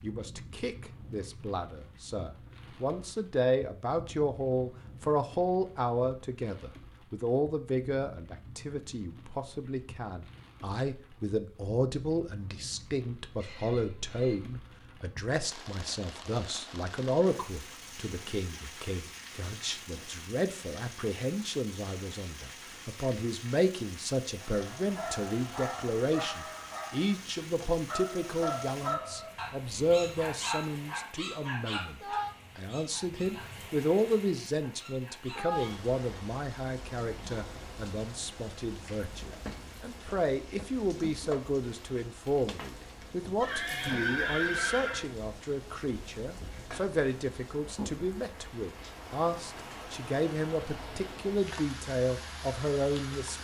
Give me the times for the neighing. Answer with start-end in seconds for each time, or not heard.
13.4-14.4, 43.4-45.0.